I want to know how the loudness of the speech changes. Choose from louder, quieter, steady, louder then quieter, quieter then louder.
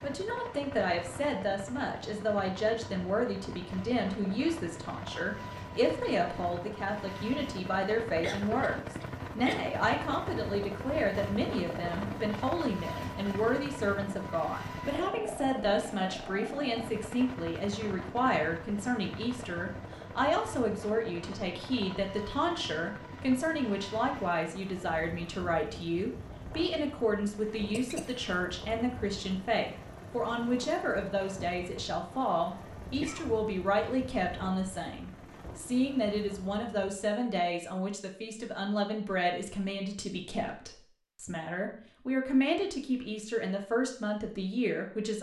steady.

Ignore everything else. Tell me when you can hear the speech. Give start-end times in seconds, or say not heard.
0.0-45.1.